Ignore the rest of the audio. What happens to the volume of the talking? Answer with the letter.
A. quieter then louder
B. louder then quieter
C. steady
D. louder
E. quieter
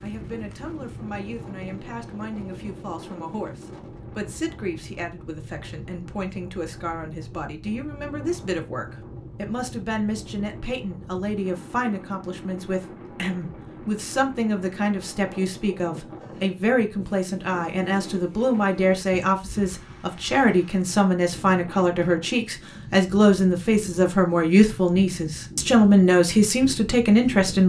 D.